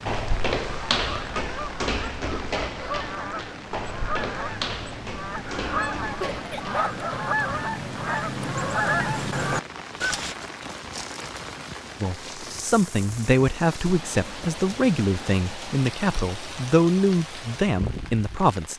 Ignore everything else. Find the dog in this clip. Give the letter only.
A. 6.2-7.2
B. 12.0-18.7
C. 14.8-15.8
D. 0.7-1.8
A.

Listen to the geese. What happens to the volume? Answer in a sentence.
The loudness of the geese goes up.